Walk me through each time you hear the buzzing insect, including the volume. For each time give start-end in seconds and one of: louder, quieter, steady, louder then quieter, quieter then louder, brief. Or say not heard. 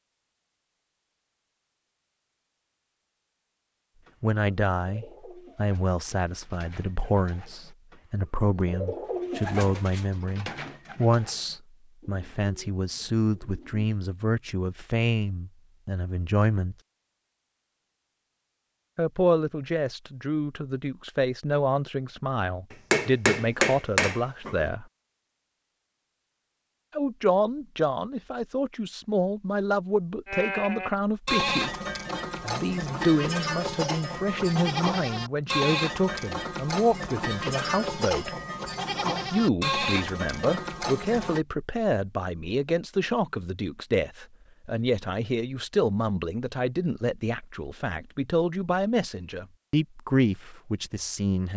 not heard.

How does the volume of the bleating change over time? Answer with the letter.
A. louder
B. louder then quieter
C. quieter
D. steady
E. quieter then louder
D.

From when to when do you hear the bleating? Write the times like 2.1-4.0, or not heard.
30.2-41.5.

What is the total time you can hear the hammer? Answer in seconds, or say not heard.
2 s.